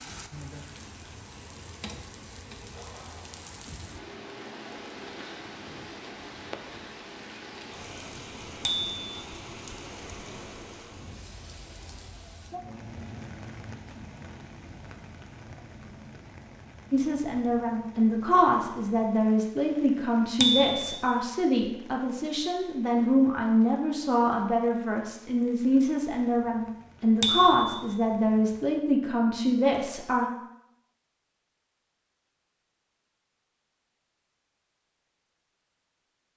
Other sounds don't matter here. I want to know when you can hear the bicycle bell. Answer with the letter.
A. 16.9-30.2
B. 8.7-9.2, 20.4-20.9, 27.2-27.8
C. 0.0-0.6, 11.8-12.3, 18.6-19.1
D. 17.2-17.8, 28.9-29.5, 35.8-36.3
B.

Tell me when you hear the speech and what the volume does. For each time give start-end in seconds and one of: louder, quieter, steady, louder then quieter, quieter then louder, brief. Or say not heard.
16.9-30.2 steady.